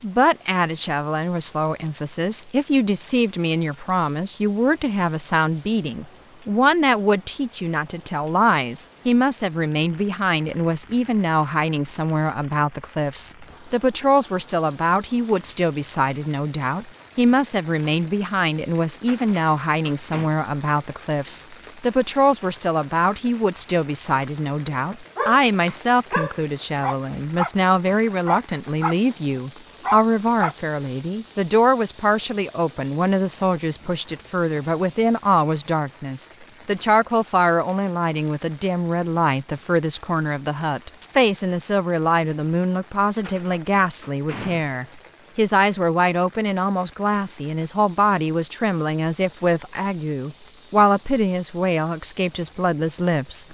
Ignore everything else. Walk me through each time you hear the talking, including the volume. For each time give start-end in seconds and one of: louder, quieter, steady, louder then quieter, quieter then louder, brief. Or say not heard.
0.0-53.4 steady.